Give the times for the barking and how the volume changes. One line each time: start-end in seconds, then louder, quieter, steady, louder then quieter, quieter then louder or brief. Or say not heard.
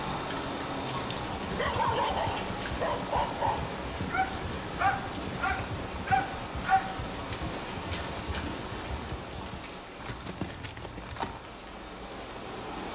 1.4-6.8 steady.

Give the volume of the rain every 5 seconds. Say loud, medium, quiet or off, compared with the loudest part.
loud, loud, medium.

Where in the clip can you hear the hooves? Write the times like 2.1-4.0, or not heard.
1.0-11.4.